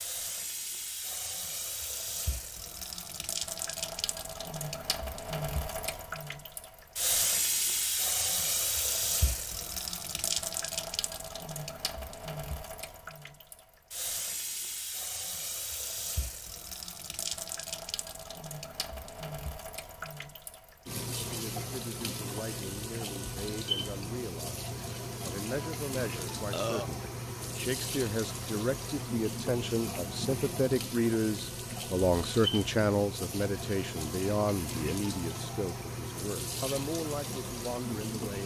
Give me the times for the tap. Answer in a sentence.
You can hear the tap from 0.0 to 38.4 s.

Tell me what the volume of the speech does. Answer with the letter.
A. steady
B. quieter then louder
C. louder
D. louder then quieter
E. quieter
D.